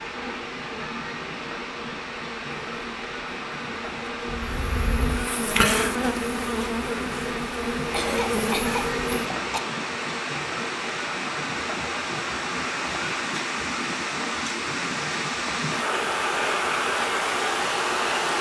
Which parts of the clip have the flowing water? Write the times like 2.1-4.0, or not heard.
0.0-18.3.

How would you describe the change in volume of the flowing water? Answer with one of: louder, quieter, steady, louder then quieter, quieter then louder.
louder.